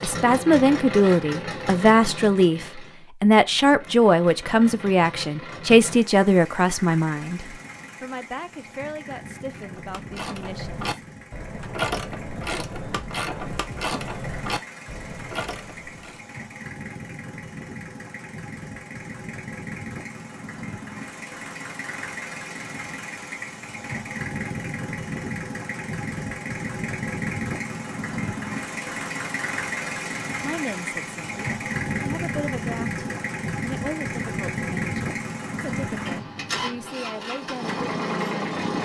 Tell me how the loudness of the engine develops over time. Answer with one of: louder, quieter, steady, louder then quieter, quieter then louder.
quieter then louder.